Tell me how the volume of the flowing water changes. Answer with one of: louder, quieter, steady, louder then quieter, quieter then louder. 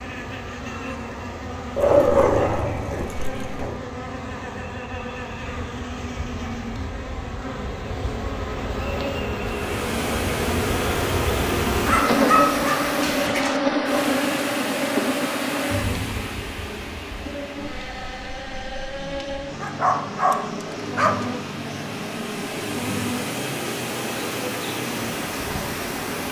quieter then louder.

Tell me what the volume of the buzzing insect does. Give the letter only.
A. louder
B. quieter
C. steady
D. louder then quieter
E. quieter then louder
D.